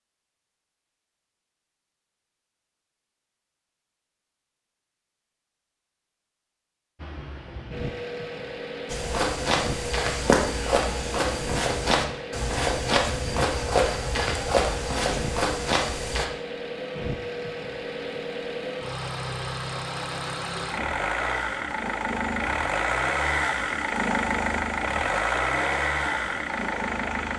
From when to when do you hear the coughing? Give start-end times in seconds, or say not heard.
not heard.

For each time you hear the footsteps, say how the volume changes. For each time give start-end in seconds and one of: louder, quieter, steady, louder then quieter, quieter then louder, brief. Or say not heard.
8.8-16.2 steady.